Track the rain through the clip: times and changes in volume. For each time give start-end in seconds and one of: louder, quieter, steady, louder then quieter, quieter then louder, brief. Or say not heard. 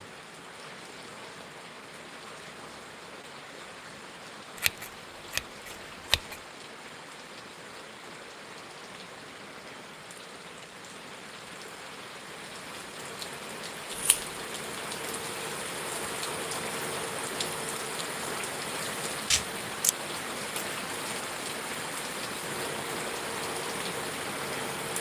0.0-24.9 louder.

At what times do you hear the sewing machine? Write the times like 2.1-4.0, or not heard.
13.2-18.9, 22.4-24.9.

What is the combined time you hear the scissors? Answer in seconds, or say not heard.
3 s.